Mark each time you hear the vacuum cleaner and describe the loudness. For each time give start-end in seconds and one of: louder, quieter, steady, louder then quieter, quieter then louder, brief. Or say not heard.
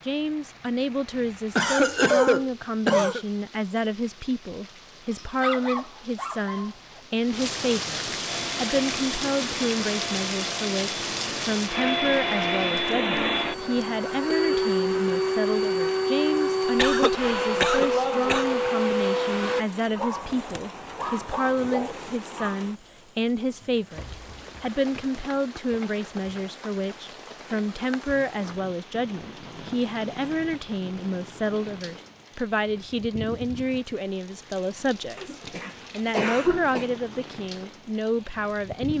8.2-19.6 louder.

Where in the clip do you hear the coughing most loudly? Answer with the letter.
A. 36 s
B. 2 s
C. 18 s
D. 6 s
B.